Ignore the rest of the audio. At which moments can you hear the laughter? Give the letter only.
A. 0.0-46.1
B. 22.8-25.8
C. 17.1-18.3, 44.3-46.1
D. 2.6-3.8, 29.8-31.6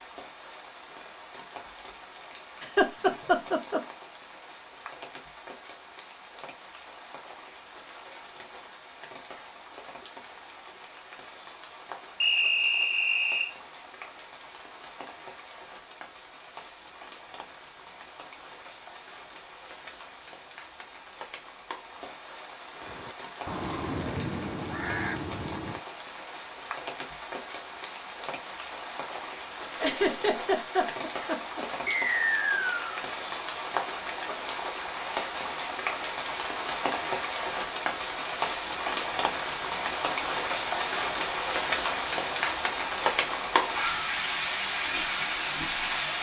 D.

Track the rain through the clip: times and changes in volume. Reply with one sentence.
The rain can be heard from 0.0 to 46.1 s, getting louder.